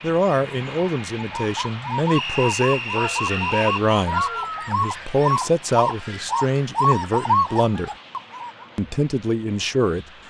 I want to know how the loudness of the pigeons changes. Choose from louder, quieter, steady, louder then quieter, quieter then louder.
louder.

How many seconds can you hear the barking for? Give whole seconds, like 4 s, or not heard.
2 s.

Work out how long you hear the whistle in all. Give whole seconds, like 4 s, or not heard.
2 s.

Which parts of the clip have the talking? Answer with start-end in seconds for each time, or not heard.
0.0-7.9, 8.8-10.1.